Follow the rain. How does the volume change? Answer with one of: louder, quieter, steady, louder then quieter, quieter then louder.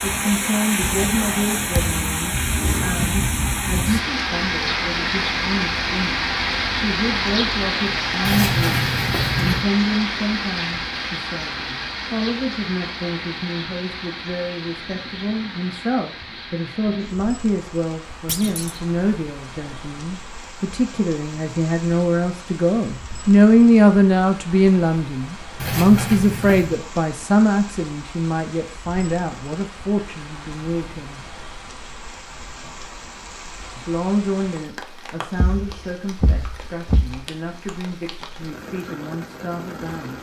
quieter.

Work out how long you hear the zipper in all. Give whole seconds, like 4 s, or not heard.
3 s.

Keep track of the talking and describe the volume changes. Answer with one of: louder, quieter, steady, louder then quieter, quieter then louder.
louder then quieter.